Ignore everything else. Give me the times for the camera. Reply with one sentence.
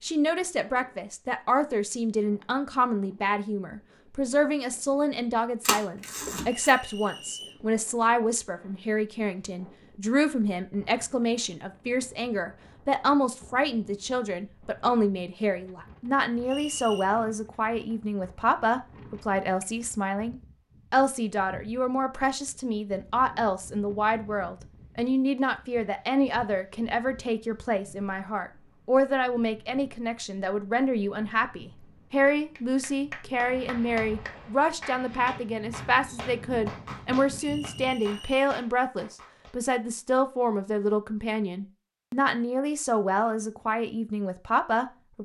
The camera can be heard from 5.7 to 6.8 s.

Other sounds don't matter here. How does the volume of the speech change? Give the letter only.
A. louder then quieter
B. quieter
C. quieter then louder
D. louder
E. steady
E.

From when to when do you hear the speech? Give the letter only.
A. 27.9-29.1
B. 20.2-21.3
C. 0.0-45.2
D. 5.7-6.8
C.